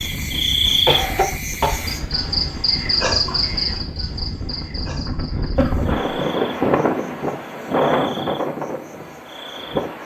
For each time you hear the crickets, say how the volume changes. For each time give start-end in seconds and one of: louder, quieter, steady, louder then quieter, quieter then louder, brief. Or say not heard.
0.0-10.0 quieter.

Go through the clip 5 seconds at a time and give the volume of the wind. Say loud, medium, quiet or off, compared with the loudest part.
medium, loud.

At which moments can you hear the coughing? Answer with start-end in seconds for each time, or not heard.
0.8-1.9, 5.2-6.0.